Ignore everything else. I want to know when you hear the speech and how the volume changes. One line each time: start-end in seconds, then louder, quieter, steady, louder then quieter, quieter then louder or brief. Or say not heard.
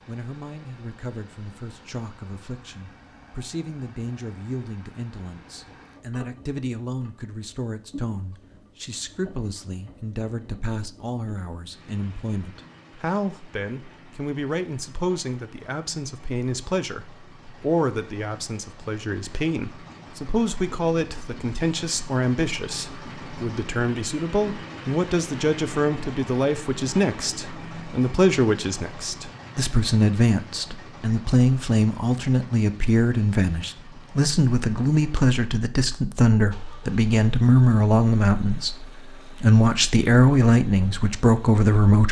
0.1-42.0 louder.